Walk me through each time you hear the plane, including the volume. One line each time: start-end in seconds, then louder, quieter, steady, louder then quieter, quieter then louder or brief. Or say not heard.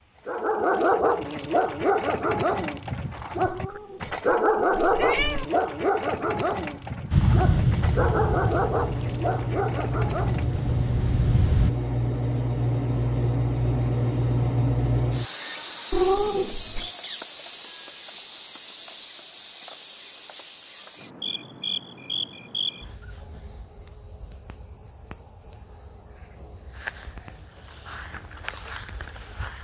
7.1-11.8 quieter then louder.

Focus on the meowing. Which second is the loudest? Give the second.
16 s.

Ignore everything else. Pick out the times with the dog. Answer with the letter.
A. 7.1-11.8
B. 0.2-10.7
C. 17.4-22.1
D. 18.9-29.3
B.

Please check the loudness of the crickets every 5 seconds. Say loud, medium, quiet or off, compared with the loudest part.
medium, medium, loud, loud, medium, medium.